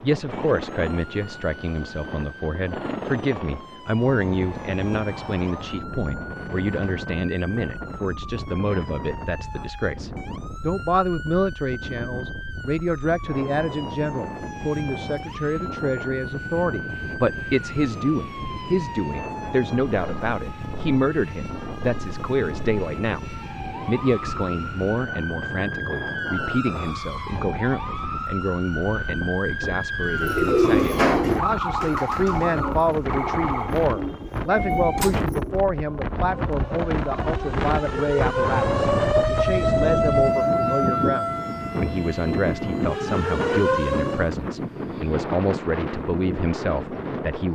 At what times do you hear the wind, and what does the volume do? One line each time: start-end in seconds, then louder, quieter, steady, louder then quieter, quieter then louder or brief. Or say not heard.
0.0-47.5 louder.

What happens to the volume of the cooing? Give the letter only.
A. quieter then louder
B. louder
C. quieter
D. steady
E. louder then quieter
C.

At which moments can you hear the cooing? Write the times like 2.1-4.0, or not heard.
30.1-35.6.